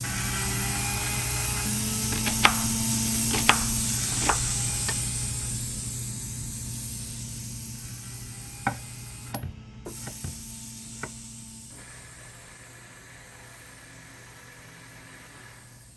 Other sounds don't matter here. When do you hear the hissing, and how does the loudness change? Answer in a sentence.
The hissing can be heard from 0.0 to 15.9 s, getting quieter.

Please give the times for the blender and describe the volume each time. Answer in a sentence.
The blender can be heard from 0.0 to 15.9 s, getting quieter.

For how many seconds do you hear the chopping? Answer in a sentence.
The chopping can be heard for 5 seconds in total.